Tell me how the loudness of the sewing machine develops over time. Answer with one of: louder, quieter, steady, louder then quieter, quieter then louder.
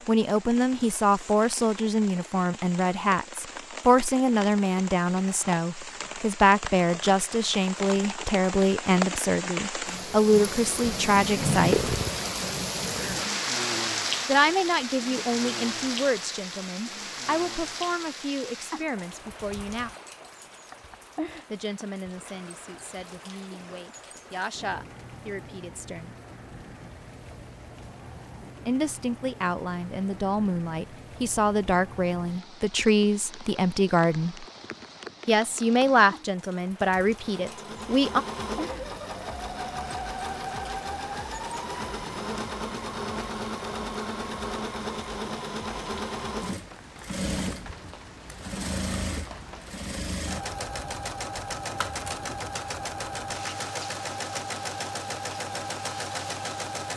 steady.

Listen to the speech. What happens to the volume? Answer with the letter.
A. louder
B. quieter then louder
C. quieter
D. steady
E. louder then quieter
B.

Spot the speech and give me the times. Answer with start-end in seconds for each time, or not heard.
0.1-11.9, 14.2-19.9, 21.5-26.1, 28.6-34.5, 35.2-38.2.